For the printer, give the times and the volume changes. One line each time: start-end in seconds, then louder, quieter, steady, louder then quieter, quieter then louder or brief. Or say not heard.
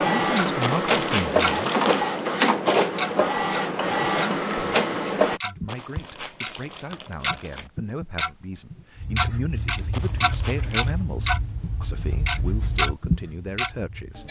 0.0-5.4 steady.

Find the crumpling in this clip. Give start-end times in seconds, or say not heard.
0.6-2.0, 5.7-7.7, 9.9-10.9.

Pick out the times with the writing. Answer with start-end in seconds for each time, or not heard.
8.9-14.2.